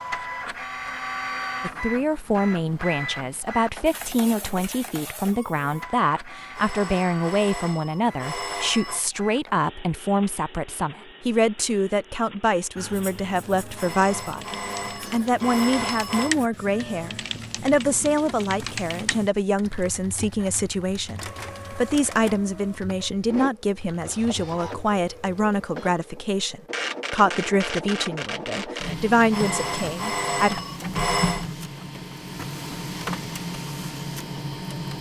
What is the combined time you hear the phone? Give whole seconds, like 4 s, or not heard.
7 s.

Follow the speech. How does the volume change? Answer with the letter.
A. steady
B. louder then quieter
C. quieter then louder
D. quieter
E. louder
A.